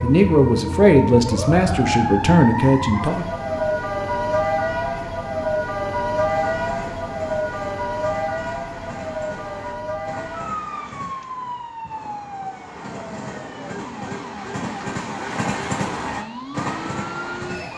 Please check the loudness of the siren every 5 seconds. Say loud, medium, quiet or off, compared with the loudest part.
loud, loud, medium, medium.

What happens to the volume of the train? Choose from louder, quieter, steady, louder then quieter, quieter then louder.
louder.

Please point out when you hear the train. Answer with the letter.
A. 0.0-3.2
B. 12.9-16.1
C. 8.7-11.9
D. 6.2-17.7
D.